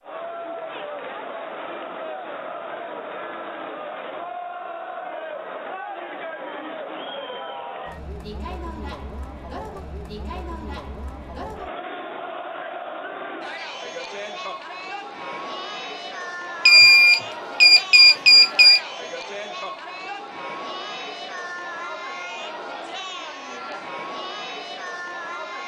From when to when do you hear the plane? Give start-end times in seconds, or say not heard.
not heard.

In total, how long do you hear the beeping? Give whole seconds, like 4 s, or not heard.
2 s.